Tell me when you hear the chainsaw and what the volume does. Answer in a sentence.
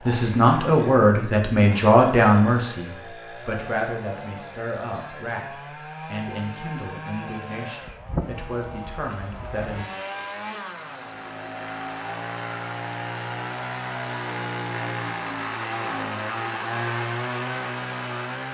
The chainsaw can be heard from 0.0 to 18.4 s, getting louder.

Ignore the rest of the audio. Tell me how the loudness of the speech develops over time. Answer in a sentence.
The loudness of the speech goes down.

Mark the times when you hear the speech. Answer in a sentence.
The speech can be heard from 0.1 to 9.8 s.